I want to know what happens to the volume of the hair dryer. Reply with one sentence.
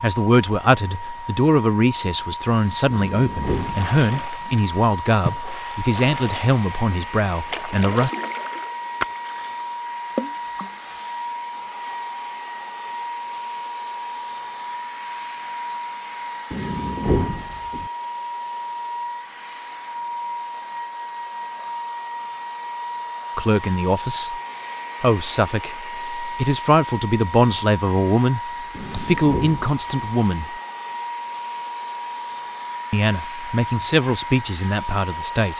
The volume of the hair dryer stays about the same.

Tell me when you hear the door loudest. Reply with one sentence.
The volume of the door peaks at 17 seconds.